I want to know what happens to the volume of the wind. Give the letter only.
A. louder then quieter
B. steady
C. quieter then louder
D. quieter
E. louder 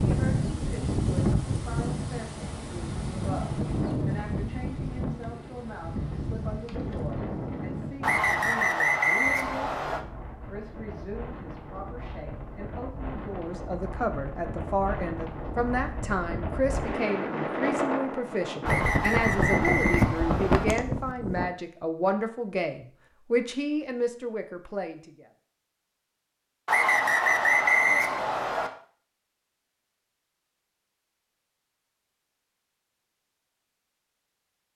C.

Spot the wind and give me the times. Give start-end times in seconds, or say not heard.
0.0-21.5.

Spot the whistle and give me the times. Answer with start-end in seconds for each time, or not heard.
8.0-10.0, 18.6-20.6, 26.6-28.7.